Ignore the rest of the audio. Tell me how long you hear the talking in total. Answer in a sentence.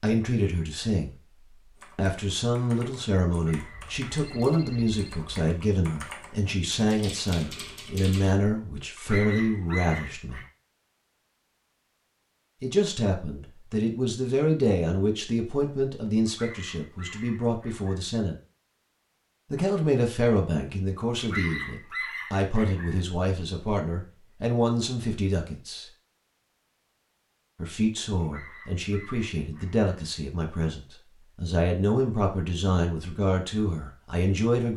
You can hear the talking for 29 seconds altogether.